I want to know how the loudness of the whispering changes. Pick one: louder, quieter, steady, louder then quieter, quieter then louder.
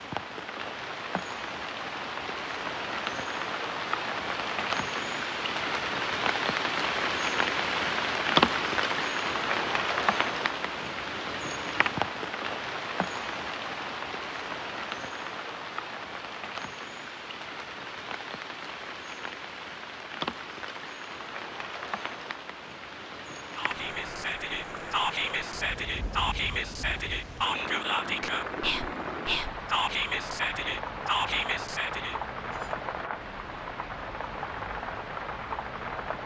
steady.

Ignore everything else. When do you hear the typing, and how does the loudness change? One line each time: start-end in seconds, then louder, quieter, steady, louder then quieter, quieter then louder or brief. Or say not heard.
not heard.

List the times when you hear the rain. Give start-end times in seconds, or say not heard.
0.0-36.2.